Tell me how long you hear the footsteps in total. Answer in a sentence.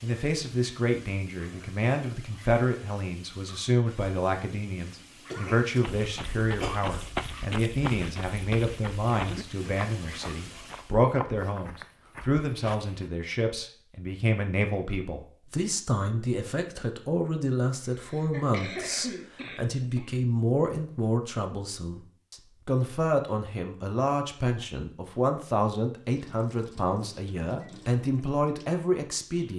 You can hear the footsteps for 7 seconds altogether.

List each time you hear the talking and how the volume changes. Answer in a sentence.
The talking can be heard from 0.0 to 29.5 s, at a steady volume.